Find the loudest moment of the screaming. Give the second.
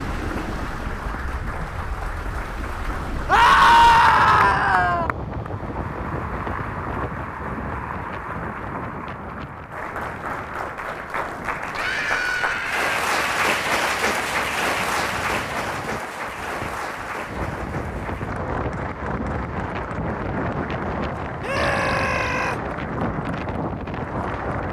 4 s.